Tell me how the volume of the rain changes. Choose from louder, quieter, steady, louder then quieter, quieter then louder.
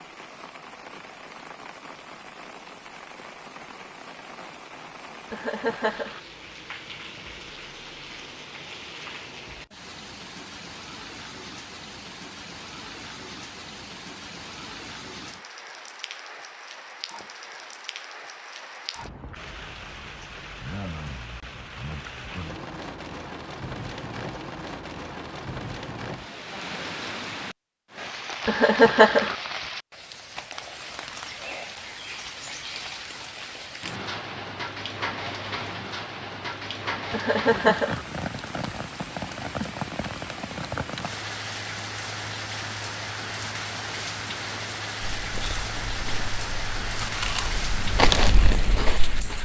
louder.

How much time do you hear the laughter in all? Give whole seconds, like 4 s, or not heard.
3 s.